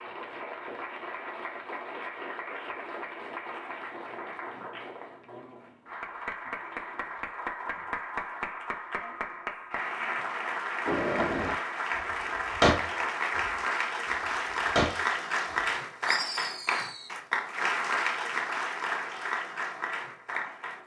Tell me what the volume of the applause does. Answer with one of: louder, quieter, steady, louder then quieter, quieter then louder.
louder.